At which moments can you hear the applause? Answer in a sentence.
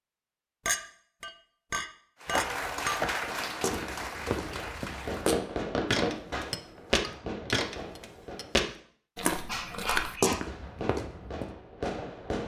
You can hear the applause from 2.2 to 5.5 s.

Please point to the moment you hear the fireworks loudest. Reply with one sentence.
The loudest moment of the fireworks is at 6 seconds.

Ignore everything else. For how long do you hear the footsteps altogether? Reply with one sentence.
You can hear the footsteps for 9 seconds altogether.